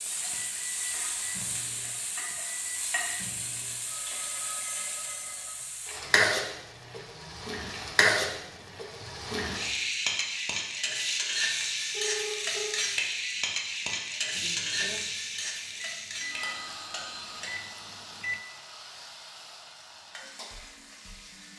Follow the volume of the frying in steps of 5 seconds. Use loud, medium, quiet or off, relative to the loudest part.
medium, loud, loud, medium, quiet.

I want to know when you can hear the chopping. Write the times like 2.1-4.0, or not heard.
not heard.